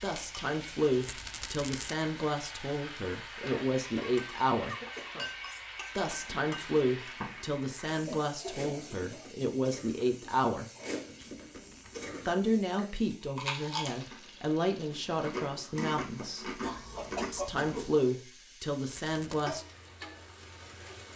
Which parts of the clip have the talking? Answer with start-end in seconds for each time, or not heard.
0.0-4.8, 6.0-10.7, 12.2-16.6, 17.3-19.6.